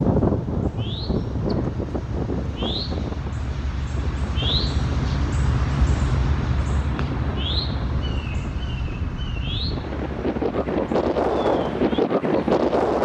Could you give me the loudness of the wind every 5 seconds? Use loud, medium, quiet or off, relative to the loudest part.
medium, quiet, loud.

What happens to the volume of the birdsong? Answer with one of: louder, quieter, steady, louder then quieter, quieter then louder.
louder then quieter.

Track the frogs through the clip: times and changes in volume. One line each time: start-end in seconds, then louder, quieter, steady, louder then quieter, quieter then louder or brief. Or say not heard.
not heard.